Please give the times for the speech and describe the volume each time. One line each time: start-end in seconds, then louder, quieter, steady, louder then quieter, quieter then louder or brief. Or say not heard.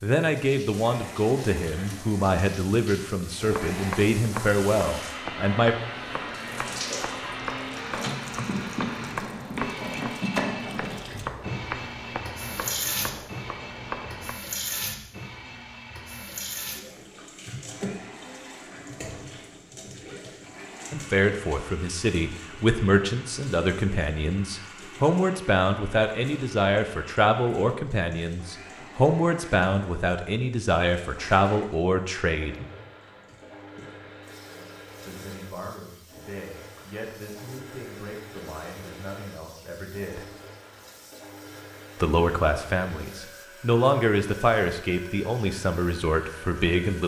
0.0-5.8 steady
20.9-32.5 steady
35.0-40.2 steady
42.0-47.0 louder then quieter.